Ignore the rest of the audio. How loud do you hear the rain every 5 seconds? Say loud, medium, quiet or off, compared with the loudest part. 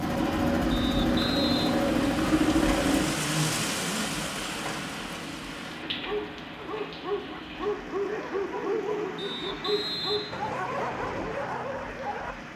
loud, medium, medium.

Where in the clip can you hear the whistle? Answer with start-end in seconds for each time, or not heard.
0.7-1.8, 9.2-10.6.